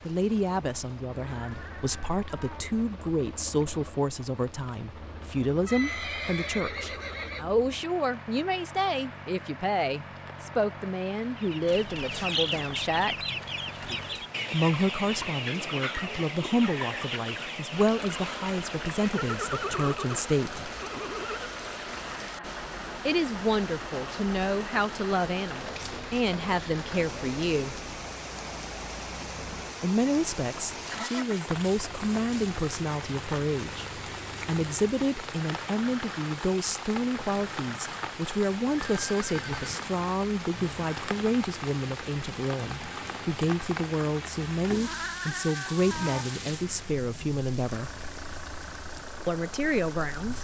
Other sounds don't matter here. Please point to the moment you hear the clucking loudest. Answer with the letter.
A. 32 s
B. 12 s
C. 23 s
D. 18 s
B.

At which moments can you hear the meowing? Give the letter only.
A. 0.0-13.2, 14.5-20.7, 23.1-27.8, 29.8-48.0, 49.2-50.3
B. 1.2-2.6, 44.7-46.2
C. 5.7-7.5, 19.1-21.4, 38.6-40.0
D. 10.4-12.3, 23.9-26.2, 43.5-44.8
B.